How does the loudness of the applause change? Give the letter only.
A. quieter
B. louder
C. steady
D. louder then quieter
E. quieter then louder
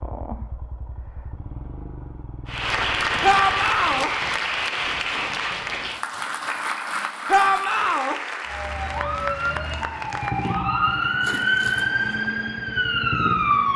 A.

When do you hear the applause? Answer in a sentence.
You can hear the applause from 2.5 to 10.7 s.